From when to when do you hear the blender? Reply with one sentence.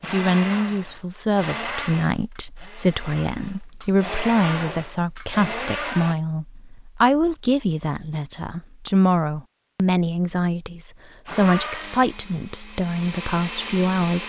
You can hear the blender from 0.0 to 6.2 s and from 11.2 to 14.2 s.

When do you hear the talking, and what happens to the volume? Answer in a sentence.
You can hear the talking from 0.0 to 14.2 s, at a steady volume.